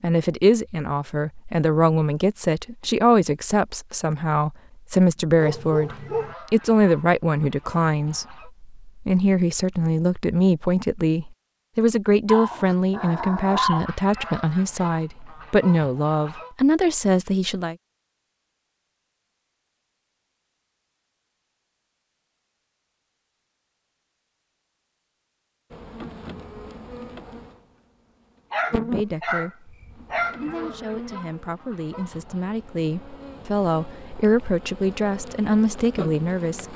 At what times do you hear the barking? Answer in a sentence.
You can hear the barking from 5.3 to 6.3 s, from 12.2 to 13.9 s and from 28.5 to 30.4 s.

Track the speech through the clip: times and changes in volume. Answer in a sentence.
You can hear the speech from 0.0 to 17.8 s, at a steady volume; and from 28.7 to 36.7 s, getting louder.